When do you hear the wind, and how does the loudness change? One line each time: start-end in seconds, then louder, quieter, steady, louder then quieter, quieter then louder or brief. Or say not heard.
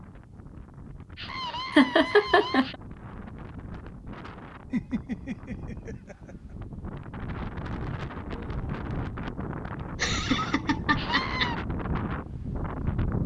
0.0-13.2 louder.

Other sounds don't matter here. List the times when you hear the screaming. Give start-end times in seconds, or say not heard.
1.1-2.8, 10.9-11.6.